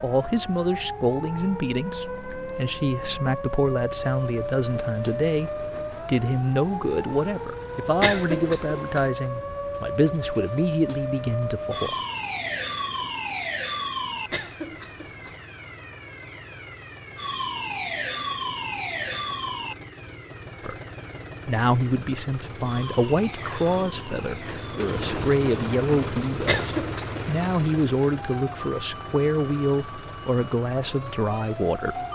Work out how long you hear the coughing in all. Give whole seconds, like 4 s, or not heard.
3 s.